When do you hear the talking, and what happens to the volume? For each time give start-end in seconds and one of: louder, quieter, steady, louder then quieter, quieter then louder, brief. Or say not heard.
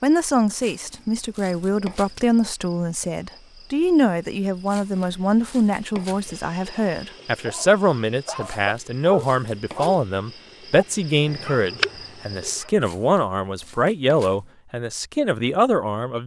0.0-16.2 steady.